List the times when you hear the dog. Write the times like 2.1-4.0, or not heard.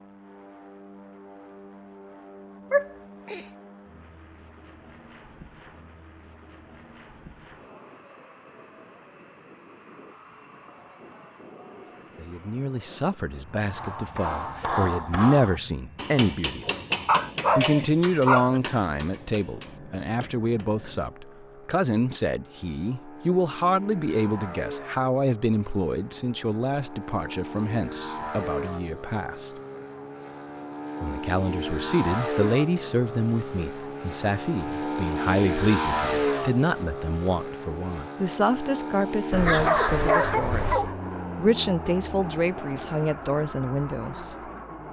2.7-3.5, 17.1-18.6, 39.3-41.0.